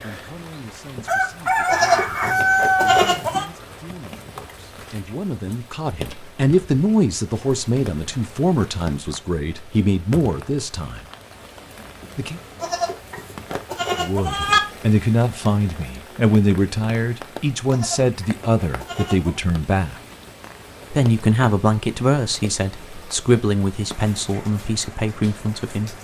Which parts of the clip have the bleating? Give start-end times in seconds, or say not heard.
1.6-3.5, 12.6-14.6, 17.6-19.4.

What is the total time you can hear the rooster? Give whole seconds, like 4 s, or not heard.
2 s.